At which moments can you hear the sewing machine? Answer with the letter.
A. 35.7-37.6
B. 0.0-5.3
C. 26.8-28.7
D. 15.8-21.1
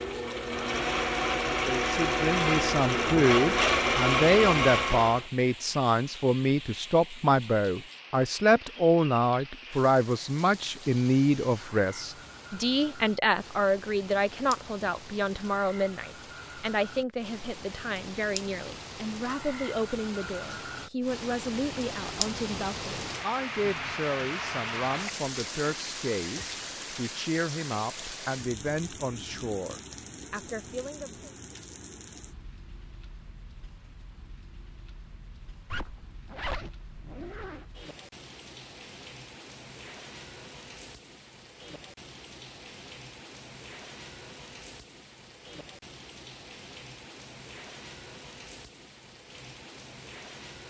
B.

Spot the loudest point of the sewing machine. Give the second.
4 s.